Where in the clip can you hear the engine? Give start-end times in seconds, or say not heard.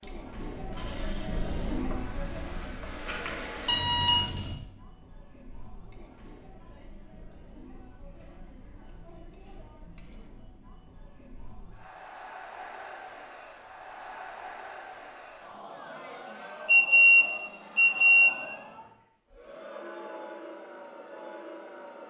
0.0-4.5.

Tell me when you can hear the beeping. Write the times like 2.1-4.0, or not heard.
3.0-4.2, 16.6-18.4.